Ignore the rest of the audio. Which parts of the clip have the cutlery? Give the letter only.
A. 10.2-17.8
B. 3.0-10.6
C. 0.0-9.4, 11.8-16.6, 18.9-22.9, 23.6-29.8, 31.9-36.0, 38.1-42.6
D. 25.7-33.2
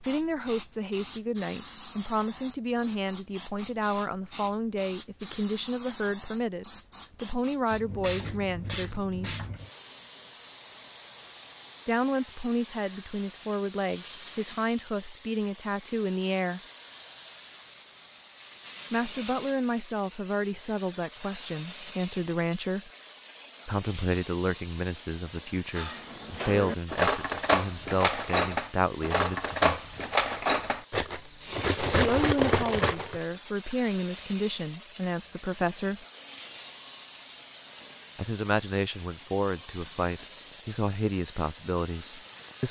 D.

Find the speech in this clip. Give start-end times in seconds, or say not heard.
0.0-9.4, 11.8-16.6, 18.9-22.9, 23.6-29.8, 31.9-36.0, 38.1-42.6.